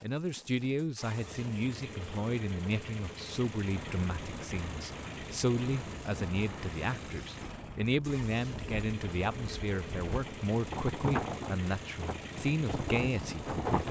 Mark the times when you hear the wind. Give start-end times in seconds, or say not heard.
3.6-13.8.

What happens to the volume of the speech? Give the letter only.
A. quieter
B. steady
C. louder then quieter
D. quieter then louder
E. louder
B.